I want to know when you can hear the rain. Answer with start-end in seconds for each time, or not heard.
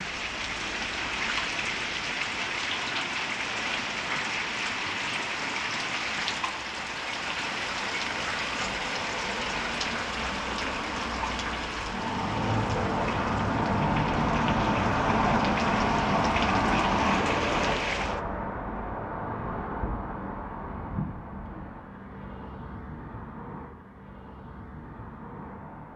0.0-18.2.